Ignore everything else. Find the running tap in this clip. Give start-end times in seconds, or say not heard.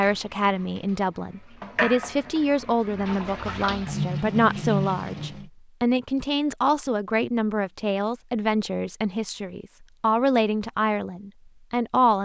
0.0-5.5.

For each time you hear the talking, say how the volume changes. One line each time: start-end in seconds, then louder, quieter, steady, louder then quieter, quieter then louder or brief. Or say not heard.
0.0-12.2 steady.